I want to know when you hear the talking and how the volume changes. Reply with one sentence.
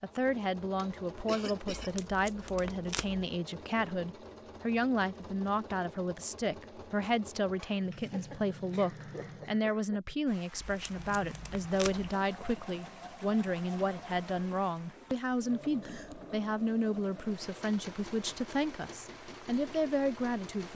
You can hear the talking from 0.0 to 20.7 s, at a steady volume.